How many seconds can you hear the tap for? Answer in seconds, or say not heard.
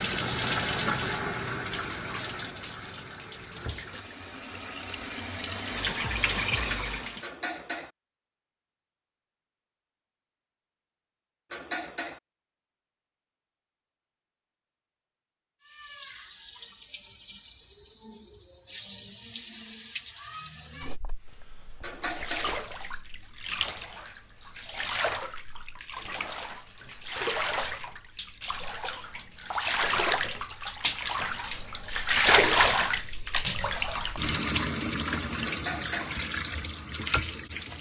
29 s.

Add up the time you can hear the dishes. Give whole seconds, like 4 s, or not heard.
3 s.